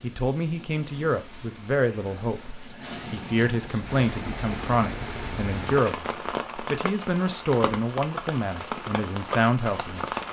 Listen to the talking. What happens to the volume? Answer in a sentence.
The volume of the talking stays about the same.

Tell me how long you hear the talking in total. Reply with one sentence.
You can hear the talking for 10 seconds altogether.